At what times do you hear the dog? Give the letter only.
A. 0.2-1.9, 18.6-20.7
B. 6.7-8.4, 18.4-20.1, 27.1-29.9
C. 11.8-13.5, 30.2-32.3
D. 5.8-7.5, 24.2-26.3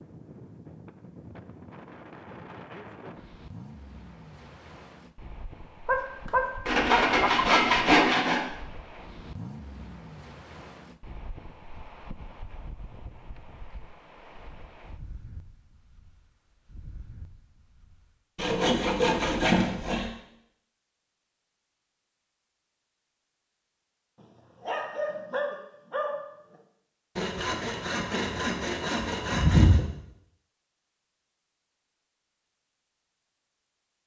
D.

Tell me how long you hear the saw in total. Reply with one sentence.
You can hear the saw for 6 seconds altogether.